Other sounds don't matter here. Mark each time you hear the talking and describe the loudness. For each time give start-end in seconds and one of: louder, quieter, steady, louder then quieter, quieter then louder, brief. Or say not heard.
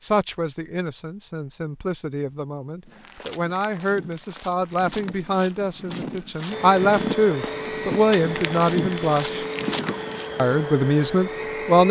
0.0-9.4 louder
10.3-11.8 brief.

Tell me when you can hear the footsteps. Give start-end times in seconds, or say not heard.
2.9-10.3.